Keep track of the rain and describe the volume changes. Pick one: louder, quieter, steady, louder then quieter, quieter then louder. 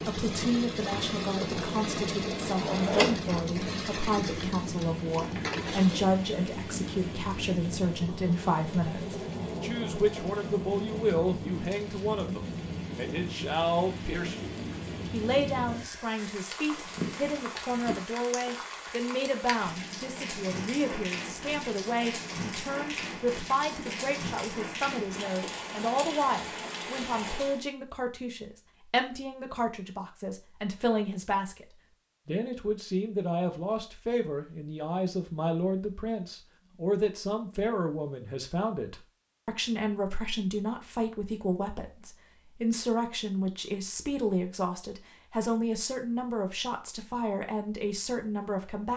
steady.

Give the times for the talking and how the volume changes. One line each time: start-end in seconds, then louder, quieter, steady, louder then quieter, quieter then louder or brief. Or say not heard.
0.1-31.6 steady
32.2-48.9 steady.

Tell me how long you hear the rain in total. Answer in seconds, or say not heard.
28 s.